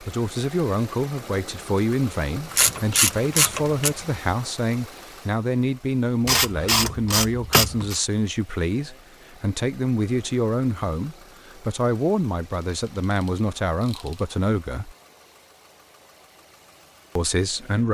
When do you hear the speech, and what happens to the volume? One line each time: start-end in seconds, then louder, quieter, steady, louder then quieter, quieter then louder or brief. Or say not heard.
0.0-14.9 steady
17.1-17.9 brief.